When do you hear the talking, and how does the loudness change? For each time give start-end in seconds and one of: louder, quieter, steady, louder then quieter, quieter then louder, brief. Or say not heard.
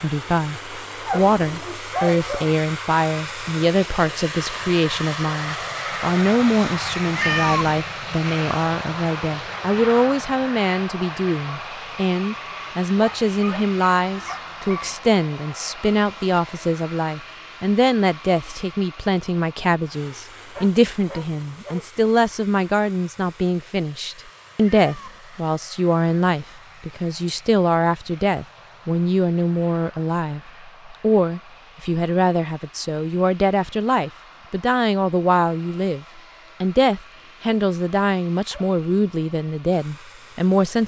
0.0-40.8 steady.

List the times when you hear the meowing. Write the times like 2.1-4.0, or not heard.
7.2-7.8, 24.6-25.2.